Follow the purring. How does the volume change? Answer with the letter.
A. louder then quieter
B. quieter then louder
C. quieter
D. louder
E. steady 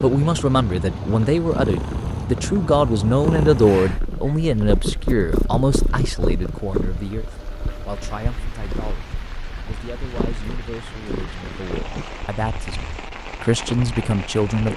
C.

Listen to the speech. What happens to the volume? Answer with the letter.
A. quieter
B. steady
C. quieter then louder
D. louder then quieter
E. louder
C.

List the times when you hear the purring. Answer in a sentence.
You can hear the purring from 0.0 to 14.7 s.